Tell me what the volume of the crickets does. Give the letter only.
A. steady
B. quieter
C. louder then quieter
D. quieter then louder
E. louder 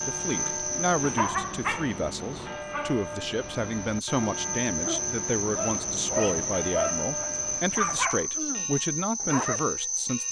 D.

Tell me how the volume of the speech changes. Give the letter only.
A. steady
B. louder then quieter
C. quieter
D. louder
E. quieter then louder
A.